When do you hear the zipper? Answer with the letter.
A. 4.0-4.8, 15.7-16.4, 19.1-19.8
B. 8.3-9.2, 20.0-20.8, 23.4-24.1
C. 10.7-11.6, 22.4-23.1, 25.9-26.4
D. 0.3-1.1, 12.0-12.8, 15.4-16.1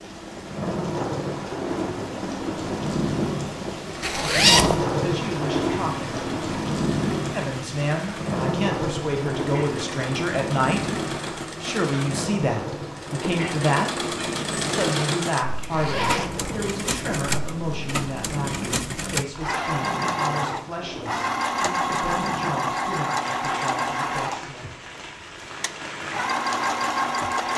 A.